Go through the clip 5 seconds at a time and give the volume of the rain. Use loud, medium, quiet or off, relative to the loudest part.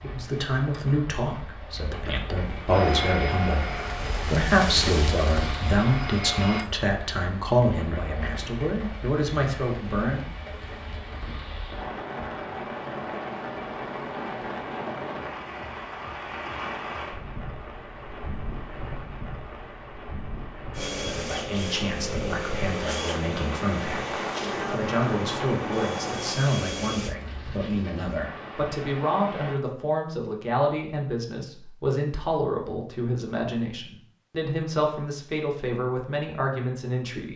loud, loud, loud, loud, loud, loud, off, off.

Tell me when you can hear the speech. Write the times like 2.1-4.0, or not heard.
0.0-10.3, 20.9-37.3.